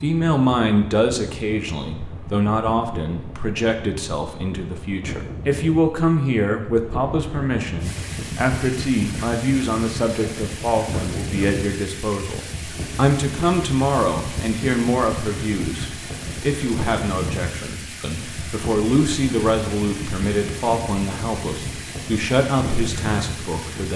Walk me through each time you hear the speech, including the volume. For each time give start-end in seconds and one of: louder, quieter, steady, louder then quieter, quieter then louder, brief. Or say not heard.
0.0-23.9 steady.